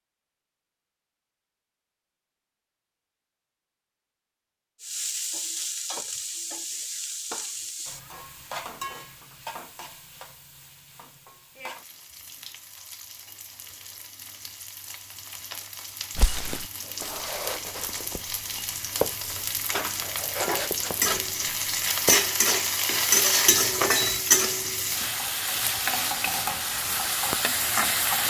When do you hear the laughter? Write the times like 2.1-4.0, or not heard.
not heard.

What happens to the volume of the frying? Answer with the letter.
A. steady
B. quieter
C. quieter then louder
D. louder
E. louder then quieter
C.